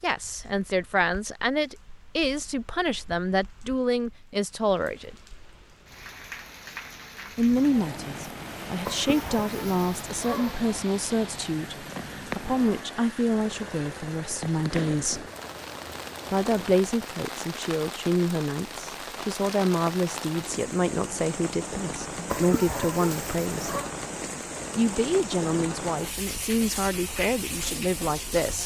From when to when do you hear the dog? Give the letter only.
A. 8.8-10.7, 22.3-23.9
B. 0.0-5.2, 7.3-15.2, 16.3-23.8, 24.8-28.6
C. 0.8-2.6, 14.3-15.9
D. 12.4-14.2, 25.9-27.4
A.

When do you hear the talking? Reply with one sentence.
You can hear the talking from 0.0 to 5.2 s, from 7.3 to 15.2 s, from 16.3 to 23.8 s and from 24.8 to 28.6 s.